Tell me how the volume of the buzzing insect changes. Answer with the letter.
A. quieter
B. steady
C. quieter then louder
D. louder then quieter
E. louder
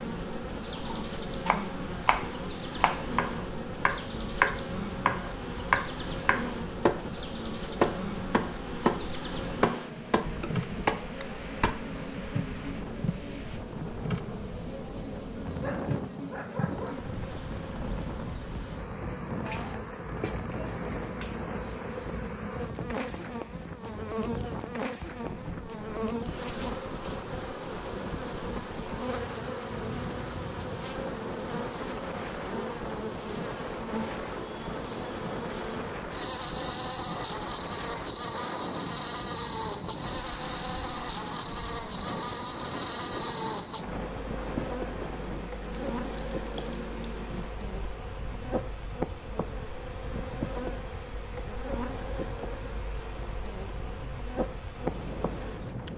B.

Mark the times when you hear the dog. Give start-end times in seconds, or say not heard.
15.6-17.1.